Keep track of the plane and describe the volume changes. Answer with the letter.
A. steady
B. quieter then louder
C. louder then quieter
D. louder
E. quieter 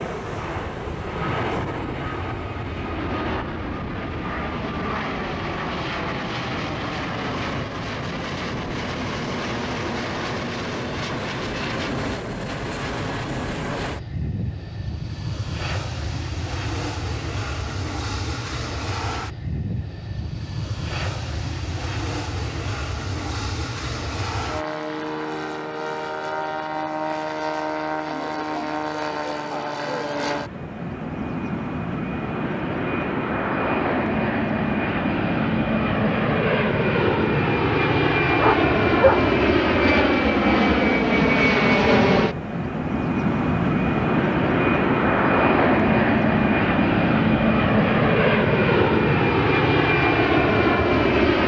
D.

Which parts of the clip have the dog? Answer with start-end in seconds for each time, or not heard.
38.4-39.3.